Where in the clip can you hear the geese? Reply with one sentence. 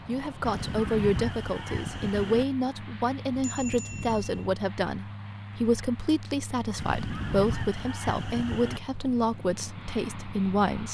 The geese can be heard from 0.4 to 2.5 s and from 6.8 to 8.8 s.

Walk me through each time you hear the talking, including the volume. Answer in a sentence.
You can hear the talking from 0.1 to 10.8 s, at a steady volume.